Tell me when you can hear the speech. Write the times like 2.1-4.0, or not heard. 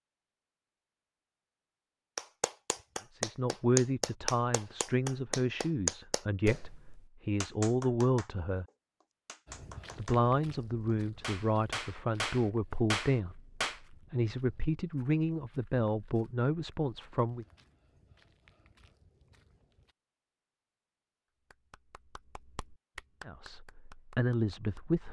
3.1-8.7, 9.9-17.4, 23.2-25.0.